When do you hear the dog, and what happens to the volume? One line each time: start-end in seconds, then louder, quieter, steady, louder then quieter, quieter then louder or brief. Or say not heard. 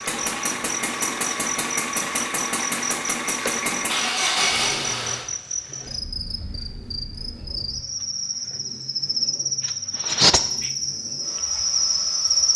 not heard.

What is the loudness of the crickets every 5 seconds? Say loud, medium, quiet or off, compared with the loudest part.
medium, medium, loud.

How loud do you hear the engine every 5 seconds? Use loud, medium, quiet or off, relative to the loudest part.
loud, quiet, quiet.